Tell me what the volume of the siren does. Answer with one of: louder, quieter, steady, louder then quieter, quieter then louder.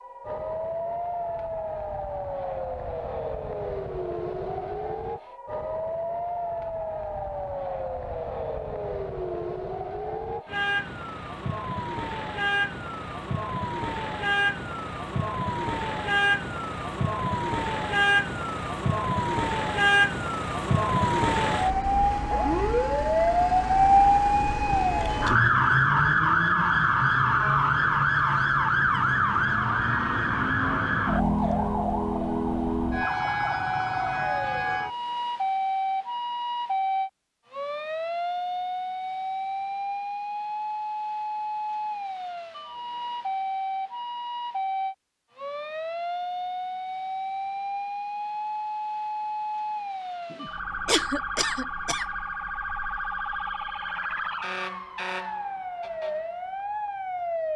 louder then quieter.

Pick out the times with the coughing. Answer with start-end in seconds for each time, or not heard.
50.3-52.0.